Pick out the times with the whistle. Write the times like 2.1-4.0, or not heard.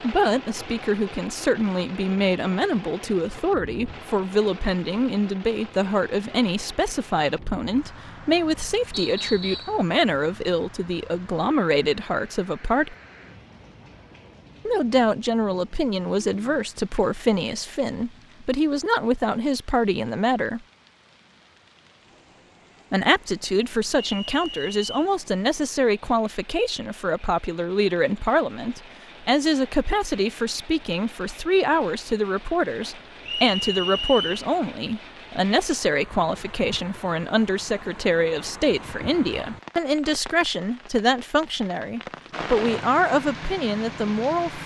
8.9-9.8, 23.9-25.1, 33.2-34.5.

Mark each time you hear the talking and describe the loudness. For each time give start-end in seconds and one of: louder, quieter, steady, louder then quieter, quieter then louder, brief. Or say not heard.
0.0-12.9 steady
14.7-20.6 steady
22.9-44.6 steady.